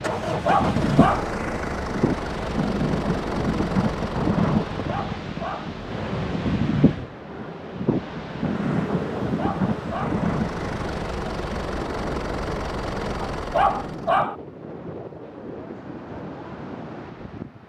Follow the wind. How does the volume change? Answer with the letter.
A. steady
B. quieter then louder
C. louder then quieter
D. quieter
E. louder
D.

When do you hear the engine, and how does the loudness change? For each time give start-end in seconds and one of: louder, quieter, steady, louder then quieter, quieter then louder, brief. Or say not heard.
0.0-14.2 quieter then louder.